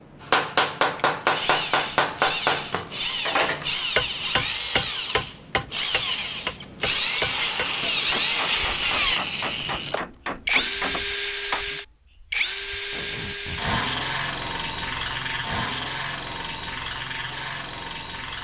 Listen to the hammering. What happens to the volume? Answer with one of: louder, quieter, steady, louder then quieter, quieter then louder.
quieter.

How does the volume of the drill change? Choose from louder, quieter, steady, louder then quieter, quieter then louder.
louder then quieter.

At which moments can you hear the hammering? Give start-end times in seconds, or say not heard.
0.3-11.7.